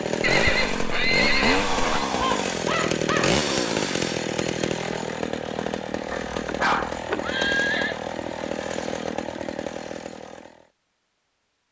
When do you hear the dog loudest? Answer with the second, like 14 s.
7 s.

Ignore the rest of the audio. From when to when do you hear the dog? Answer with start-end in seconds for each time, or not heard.
2.2-3.4, 6.1-7.0.